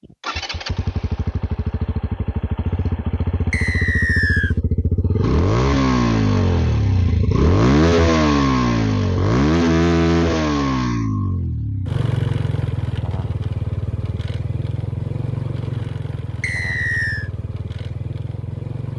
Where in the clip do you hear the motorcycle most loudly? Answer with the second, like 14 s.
8 s.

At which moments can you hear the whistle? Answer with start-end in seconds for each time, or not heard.
3.5-4.5, 16.4-17.3.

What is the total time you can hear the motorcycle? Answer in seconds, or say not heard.
19 s.